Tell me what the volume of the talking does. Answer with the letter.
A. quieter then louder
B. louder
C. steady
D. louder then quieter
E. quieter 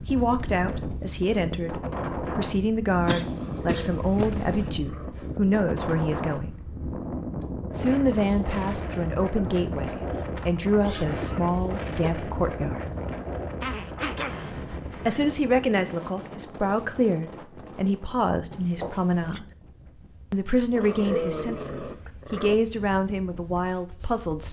C.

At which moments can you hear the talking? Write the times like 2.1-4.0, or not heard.
0.1-6.5, 7.8-12.8, 15.1-19.4, 20.3-24.4.